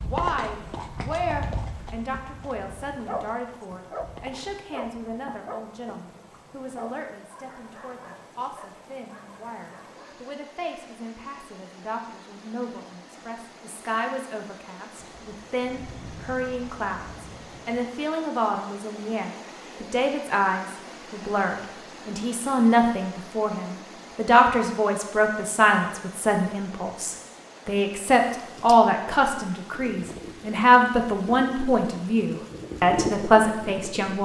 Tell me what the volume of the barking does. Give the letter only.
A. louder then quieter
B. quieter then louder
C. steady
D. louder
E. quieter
E.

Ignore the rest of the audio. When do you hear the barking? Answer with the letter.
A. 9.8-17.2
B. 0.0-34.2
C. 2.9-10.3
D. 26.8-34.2
C.